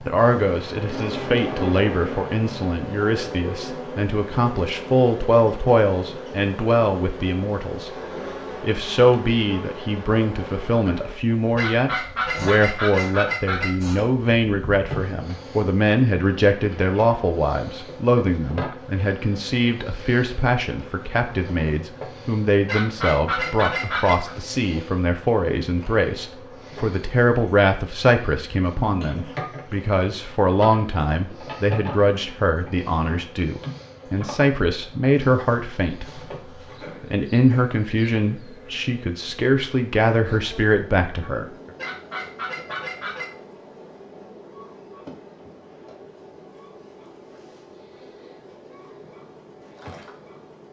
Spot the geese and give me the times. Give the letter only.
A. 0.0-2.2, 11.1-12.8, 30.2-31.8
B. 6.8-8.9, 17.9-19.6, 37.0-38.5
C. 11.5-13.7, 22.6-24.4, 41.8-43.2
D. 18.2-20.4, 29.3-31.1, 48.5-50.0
C.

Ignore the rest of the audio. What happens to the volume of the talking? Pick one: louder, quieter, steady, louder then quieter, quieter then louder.
steady.